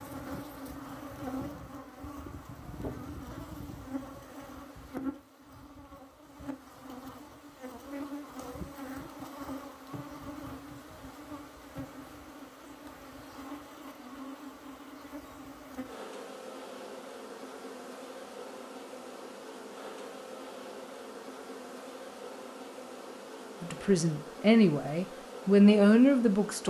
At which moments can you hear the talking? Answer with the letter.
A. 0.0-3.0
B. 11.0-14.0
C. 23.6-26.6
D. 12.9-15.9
C.